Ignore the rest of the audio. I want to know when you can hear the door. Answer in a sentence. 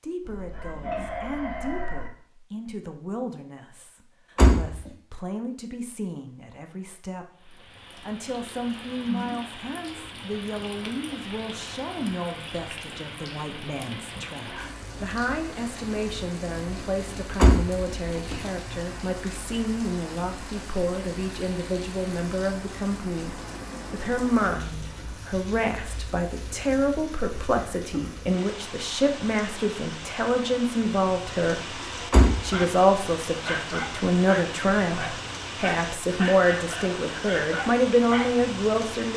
You can hear the door from 4.3 to 4.8 s, from 17.4 to 18.4 s and from 32.1 to 32.6 s.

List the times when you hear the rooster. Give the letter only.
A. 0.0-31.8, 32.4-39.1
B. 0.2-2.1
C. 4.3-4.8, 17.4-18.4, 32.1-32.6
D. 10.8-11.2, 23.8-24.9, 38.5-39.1
B.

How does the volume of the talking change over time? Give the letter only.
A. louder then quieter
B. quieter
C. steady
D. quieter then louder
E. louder
E.